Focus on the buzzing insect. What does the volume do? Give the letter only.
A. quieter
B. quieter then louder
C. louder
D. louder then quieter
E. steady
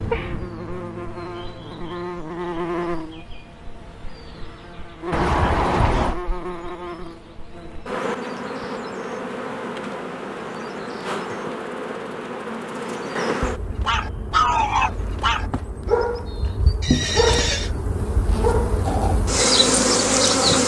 C.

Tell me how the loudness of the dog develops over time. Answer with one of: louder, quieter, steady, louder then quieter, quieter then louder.
quieter.